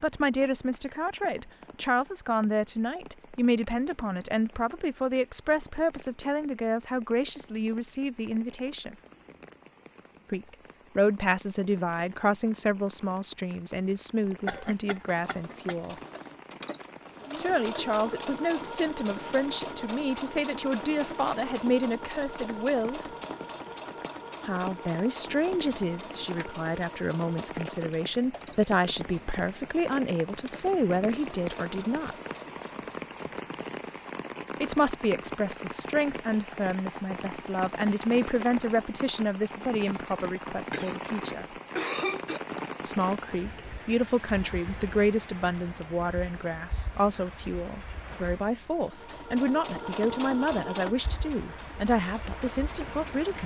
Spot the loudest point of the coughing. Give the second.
42 s.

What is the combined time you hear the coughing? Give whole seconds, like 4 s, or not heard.
3 s.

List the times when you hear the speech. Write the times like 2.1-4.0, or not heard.
0.0-8.9, 10.3-15.9, 17.4-23.0, 24.4-32.1, 34.6-41.5, 42.8-53.4.